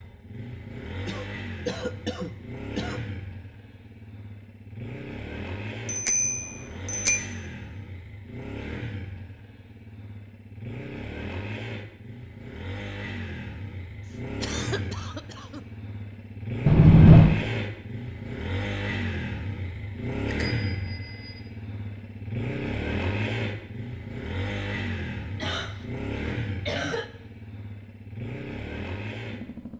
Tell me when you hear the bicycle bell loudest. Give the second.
17 s.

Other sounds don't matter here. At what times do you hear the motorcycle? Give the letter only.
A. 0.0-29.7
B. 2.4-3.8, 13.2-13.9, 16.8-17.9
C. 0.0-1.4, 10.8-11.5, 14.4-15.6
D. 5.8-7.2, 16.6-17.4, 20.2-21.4
A.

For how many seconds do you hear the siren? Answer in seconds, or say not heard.
not heard.